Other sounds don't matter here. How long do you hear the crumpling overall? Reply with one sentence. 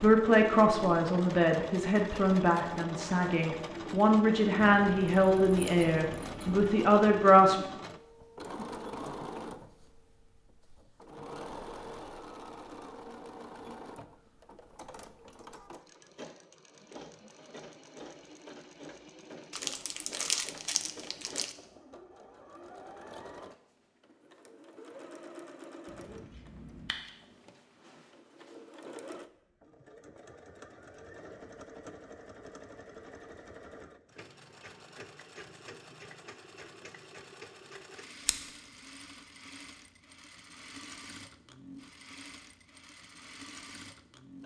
The crumpling can be heard for 2 seconds in total.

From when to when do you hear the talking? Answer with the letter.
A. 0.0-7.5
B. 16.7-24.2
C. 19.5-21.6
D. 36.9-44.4
A.